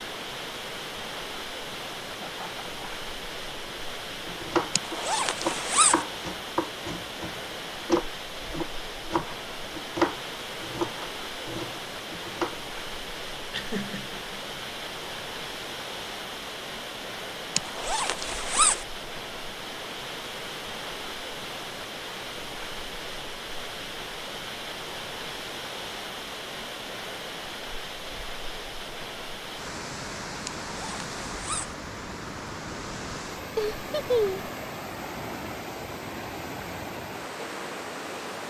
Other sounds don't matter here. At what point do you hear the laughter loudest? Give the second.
34 s.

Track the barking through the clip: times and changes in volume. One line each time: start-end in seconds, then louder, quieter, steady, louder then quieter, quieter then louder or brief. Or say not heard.
not heard.